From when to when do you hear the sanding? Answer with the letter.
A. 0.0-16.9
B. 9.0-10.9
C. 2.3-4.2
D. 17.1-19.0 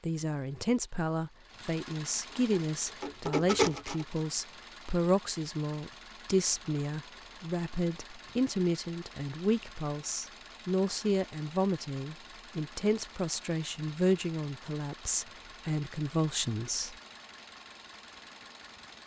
C.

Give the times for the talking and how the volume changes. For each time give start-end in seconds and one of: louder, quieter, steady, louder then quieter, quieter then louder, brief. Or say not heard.
0.0-16.9 steady.